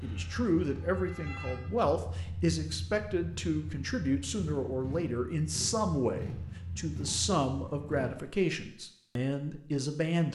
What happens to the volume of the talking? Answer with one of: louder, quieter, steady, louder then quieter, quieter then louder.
steady.